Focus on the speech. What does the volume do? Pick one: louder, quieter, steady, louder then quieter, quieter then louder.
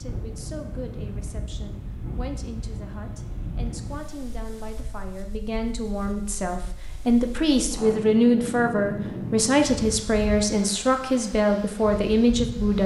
louder.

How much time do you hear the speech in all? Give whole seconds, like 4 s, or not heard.
13 s.